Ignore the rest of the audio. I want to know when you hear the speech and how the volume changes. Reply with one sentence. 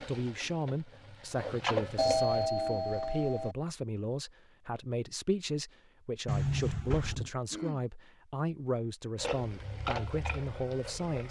The speech can be heard from 0.0 to 11.2 s, at a steady volume.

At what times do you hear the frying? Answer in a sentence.
The frying can be heard from 0.0 to 2.5 s and from 9.2 to 11.2 s.